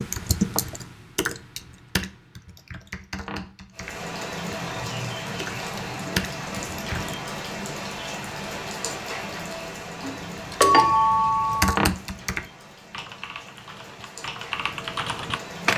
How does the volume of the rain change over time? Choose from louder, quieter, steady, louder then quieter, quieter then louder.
quieter.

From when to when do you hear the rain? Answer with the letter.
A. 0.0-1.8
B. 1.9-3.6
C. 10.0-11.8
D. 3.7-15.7
D.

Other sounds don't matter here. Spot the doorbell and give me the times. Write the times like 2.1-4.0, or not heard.
10.0-11.8.